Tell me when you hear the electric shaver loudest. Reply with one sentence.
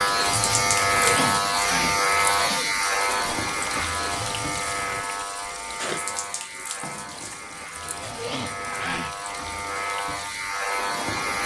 The volume of the electric shaver peaks at 1 second.